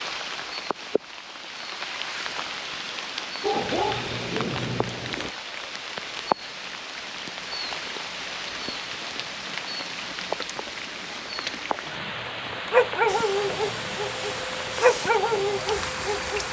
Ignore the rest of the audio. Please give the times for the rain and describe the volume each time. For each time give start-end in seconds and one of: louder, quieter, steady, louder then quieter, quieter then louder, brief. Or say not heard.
0.0-16.4 steady.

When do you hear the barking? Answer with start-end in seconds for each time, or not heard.
3.4-5.3, 12.7-16.4.